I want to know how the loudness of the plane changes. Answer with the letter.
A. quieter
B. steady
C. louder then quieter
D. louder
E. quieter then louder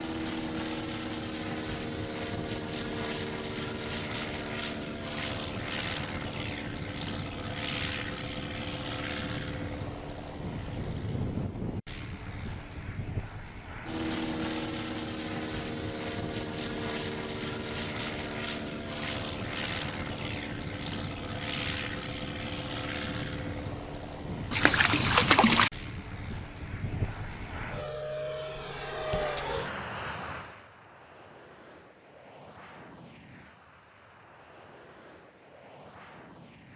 A.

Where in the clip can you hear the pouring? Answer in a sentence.
The pouring can be heard from 24.5 to 25.7 s.